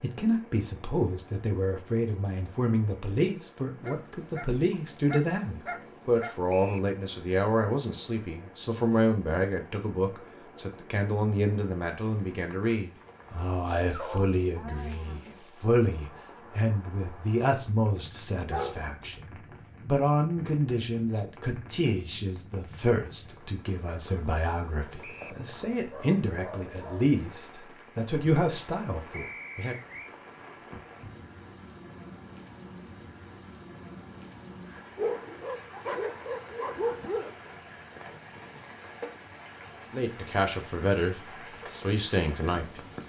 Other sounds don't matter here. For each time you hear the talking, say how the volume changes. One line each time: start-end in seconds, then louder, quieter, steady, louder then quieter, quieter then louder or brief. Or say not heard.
0.0-29.8 steady
39.9-42.8 brief.